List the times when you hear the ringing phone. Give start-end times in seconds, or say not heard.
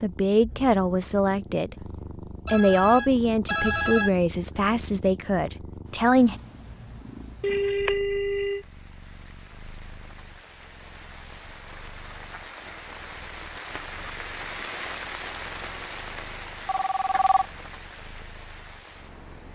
2.5-4.1, 7.4-8.7, 16.6-17.4.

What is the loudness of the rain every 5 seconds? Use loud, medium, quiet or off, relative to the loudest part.
off, quiet, loud, loud.